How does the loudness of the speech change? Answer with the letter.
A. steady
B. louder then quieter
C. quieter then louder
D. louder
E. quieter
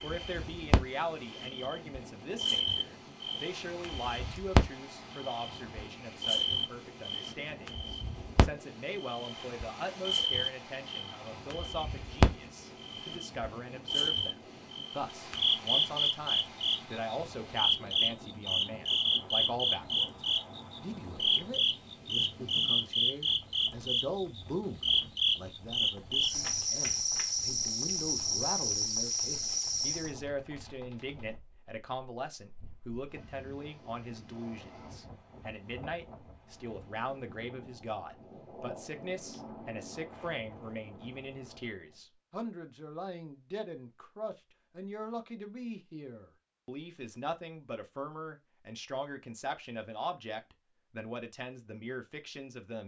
A.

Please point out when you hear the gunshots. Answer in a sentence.
You can't hear the gunshots here.